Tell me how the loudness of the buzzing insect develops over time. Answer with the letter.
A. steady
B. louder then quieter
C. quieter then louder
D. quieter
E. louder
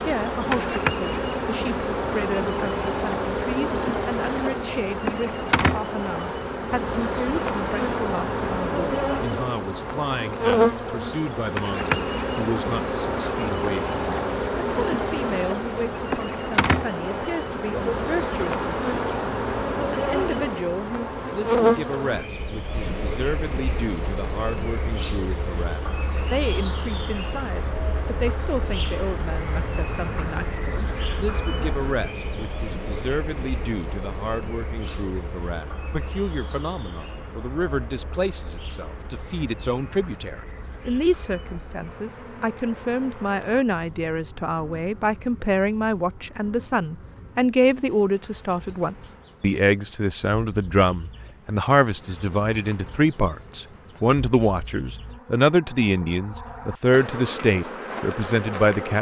D.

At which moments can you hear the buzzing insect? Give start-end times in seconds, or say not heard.
0.0-58.9.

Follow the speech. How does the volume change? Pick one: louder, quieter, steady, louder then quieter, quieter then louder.
louder.